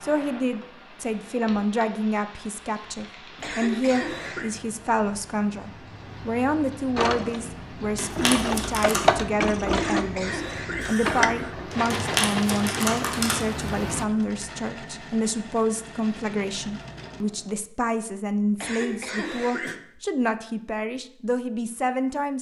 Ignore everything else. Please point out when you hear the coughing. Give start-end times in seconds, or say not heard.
3.4-4.5, 9.7-11.6, 18.6-19.8.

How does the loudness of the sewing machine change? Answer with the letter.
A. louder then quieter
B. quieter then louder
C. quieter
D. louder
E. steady
C.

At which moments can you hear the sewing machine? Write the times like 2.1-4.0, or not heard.
7.0-17.6.